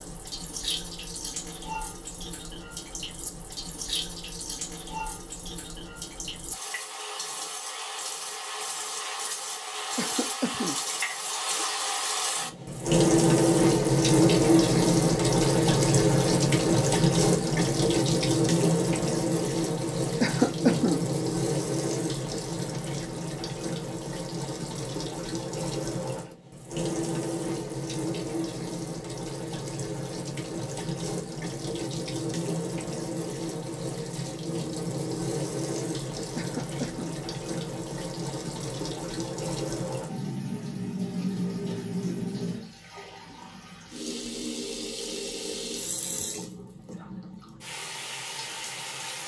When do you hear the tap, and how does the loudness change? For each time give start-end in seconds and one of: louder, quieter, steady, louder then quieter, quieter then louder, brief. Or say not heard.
0.0-49.2 louder then quieter.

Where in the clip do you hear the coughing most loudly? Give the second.
21 s.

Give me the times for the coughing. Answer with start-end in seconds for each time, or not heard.
9.9-10.8, 20.2-21.1, 36.4-37.2.